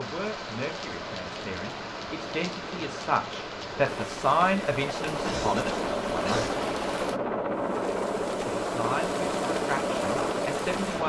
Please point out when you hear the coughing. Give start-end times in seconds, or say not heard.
5.2-6.8.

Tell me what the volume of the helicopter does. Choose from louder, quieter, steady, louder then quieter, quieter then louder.
louder.